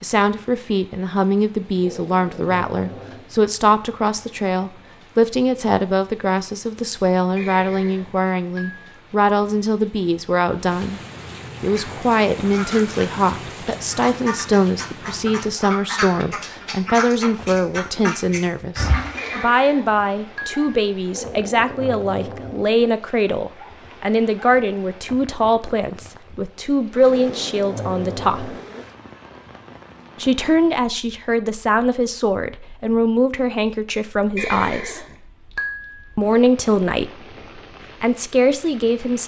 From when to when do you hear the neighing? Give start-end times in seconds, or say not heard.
7.3-8.8, 19.1-20.6, 34.4-36.0.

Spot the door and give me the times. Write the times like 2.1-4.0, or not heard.
not heard.